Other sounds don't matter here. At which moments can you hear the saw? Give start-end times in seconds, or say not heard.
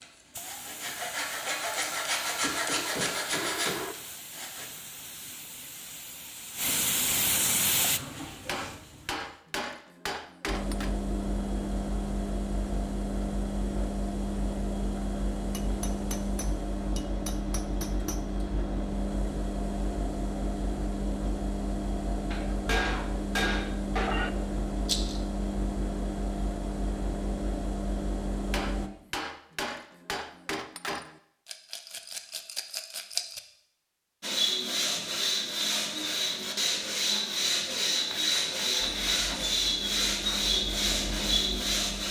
0.0-4.7, 34.2-42.0.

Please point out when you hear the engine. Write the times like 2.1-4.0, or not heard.
10.4-28.9, 38.8-42.0.